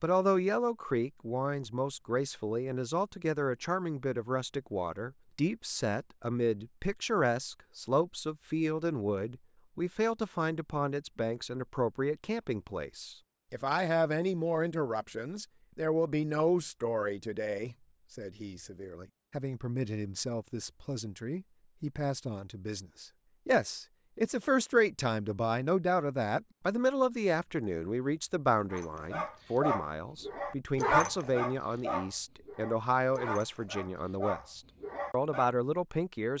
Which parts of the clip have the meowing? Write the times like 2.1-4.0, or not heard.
not heard.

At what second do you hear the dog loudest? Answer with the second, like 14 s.
31 s.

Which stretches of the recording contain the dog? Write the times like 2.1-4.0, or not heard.
28.7-35.5.